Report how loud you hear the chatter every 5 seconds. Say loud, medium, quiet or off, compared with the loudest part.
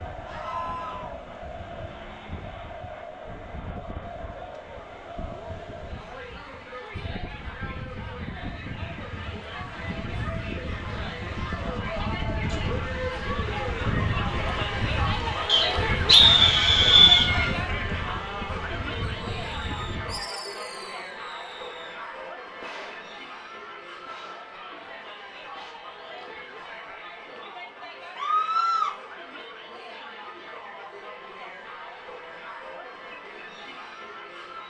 medium, medium, loud, loud, medium, medium, medium.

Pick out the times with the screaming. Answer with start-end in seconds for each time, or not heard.
0.2-1.1, 16.2-17.6, 28.1-28.9.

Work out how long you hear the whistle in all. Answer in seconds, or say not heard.
2 s.